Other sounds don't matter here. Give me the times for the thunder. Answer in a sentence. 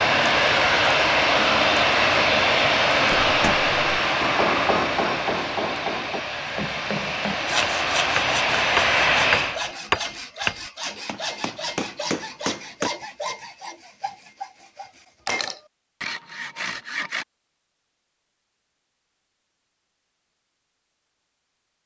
You can't hear the thunder here.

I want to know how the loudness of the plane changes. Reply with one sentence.
The loudness of the plane goes down, then up.